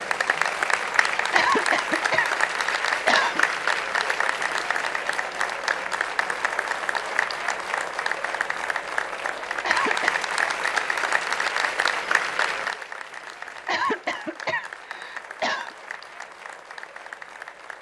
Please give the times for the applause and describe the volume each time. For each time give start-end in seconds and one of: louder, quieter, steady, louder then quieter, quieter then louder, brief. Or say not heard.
0.0-17.7 quieter.